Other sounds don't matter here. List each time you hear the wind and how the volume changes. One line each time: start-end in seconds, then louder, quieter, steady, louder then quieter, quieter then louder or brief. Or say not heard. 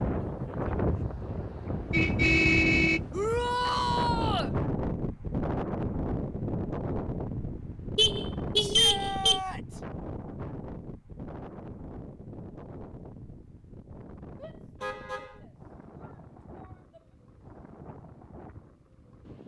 0.0-19.4 quieter.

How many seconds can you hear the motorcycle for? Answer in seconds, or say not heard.
not heard.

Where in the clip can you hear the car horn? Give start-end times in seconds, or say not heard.
1.9-3.7, 8.0-9.4, 14.8-15.4.